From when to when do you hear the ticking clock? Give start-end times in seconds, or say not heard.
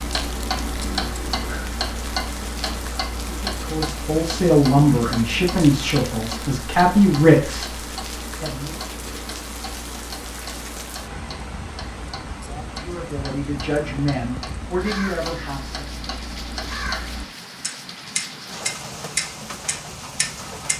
0.0-20.7.